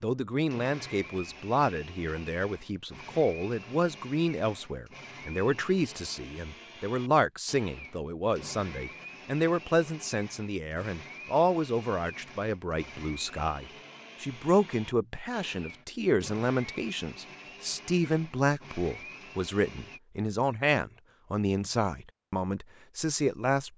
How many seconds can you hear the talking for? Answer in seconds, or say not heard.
24 s.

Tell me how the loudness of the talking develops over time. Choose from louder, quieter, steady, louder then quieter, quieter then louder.
steady.